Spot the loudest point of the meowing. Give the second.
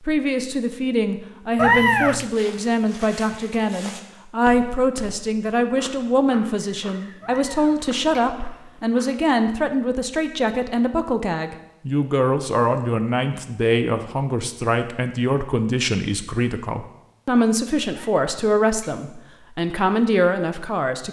2 s.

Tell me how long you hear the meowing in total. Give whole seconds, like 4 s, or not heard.
3 s.